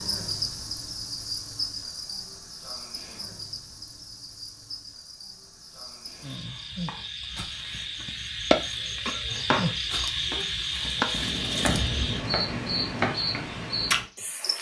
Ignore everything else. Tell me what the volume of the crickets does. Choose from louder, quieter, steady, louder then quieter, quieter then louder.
quieter then louder.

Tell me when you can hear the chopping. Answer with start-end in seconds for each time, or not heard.
6.8-9.7, 10.3-13.2.